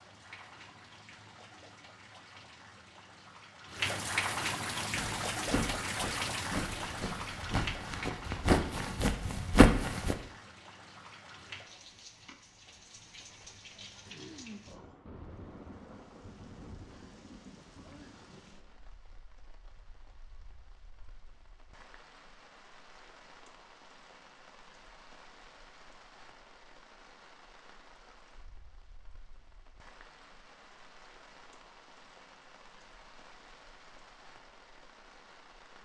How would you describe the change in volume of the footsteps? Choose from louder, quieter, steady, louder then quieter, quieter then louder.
louder.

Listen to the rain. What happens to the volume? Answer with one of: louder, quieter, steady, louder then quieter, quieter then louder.
quieter.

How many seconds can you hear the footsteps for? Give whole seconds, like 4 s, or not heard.
5 s.